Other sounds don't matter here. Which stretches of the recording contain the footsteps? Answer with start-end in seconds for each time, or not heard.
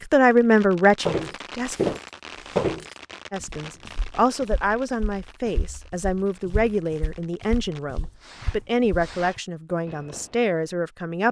1.1-9.4.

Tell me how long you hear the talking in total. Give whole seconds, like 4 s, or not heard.
10 s.